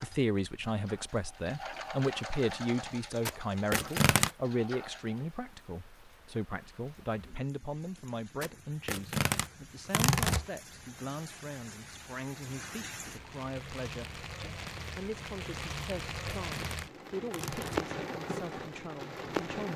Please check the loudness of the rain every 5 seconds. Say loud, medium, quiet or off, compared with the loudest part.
quiet, quiet, medium, loud.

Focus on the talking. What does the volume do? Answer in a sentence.
The volume of the talking goes down.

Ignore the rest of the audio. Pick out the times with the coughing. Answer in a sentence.
You can't hear the coughing here.